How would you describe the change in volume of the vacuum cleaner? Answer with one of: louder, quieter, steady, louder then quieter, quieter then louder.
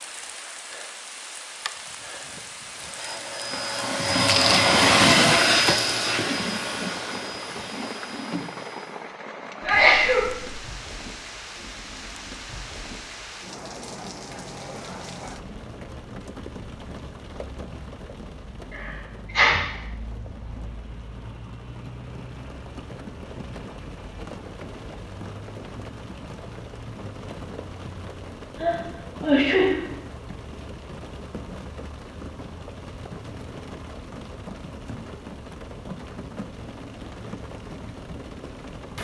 louder then quieter.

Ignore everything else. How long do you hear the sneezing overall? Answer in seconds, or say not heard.
3 s.